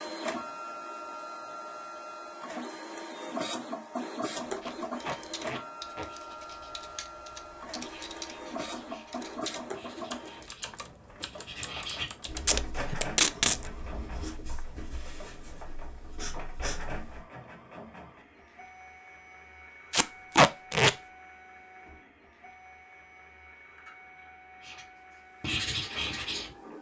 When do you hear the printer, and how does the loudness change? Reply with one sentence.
You can hear the printer from 0.0 to 26.7 s, getting quieter.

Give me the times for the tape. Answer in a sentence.
The tape can be heard from 4.6 to 6.1 s, from 12.3 to 13.7 s and from 19.9 to 20.9 s.